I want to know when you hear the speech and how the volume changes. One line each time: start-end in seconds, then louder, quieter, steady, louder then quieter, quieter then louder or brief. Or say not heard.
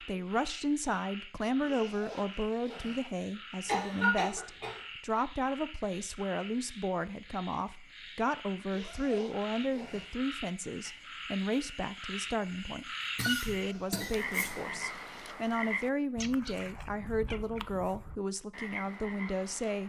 0.0-19.8 steady.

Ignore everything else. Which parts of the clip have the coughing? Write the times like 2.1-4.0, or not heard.
3.6-4.8, 13.2-14.6.